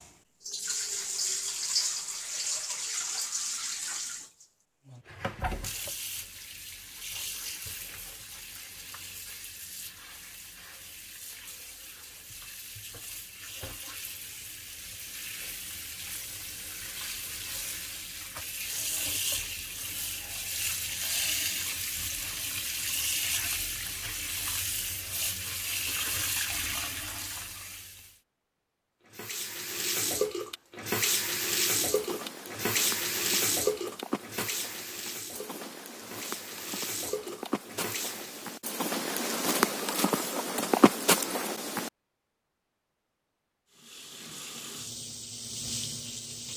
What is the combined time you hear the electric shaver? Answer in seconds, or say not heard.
not heard.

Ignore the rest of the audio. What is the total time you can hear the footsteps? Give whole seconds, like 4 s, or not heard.
10 s.